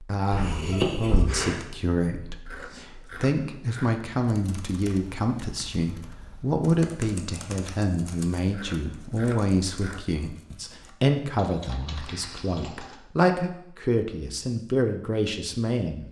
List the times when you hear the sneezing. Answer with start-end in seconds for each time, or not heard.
0.3-1.6.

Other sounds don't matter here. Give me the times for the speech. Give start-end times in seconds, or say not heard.
0.0-16.0.